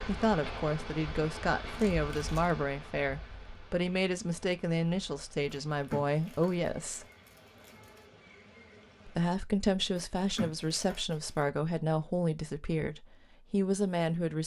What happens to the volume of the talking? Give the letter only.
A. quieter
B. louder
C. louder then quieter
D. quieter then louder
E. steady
E.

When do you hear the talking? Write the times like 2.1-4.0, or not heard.
0.1-7.0, 9.1-14.4.